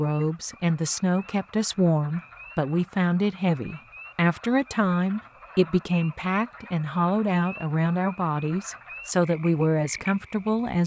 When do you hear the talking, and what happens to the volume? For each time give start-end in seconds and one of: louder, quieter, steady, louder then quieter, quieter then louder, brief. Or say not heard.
0.0-10.8 steady.